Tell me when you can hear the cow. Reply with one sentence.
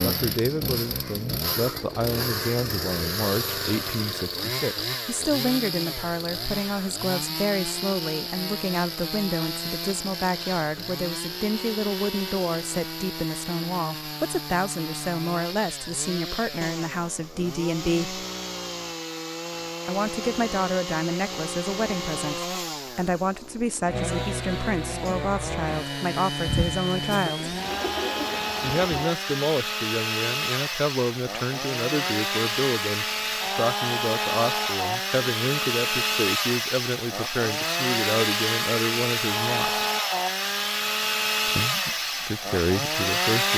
The cow can't be heard in this clip.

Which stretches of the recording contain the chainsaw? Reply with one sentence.
The chainsaw can be heard from 0.0 to 43.5 s.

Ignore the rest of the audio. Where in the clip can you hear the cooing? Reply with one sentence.
You can hear the cooing from 26.4 to 29.1 s.